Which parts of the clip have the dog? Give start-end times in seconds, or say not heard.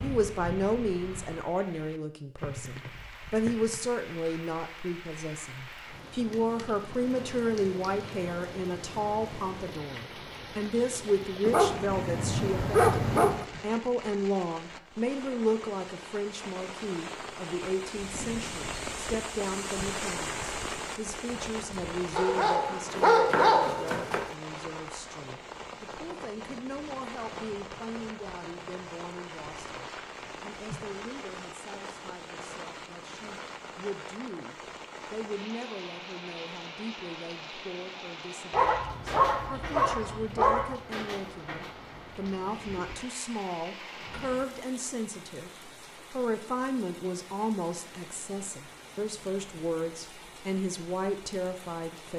11.4-13.4, 22.1-24.3, 38.5-40.8.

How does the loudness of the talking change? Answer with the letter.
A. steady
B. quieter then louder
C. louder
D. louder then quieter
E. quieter
B.